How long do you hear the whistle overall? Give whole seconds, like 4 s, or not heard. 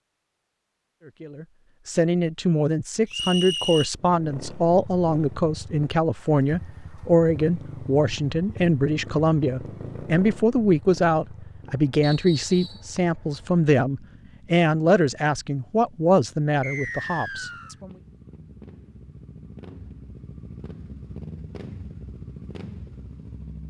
3 s.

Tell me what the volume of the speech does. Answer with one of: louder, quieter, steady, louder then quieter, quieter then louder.
steady.